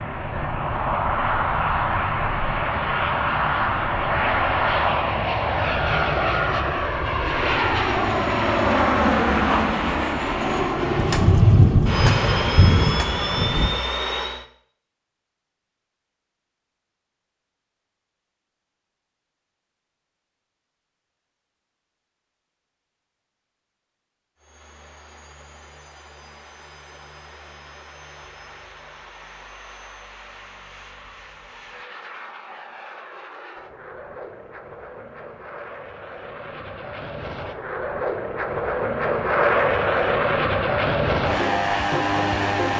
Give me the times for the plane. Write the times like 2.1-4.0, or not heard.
0.0-14.4, 24.4-42.7.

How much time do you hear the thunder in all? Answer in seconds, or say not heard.
3 s.